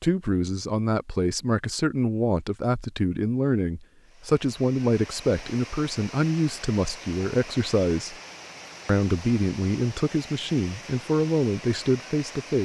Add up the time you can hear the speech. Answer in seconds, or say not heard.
12 s.